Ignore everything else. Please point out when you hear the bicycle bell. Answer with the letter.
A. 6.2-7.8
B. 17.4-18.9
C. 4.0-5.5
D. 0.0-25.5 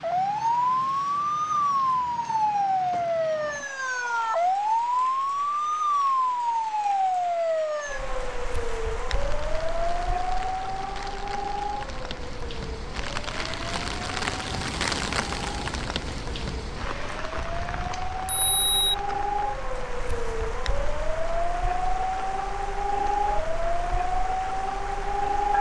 B.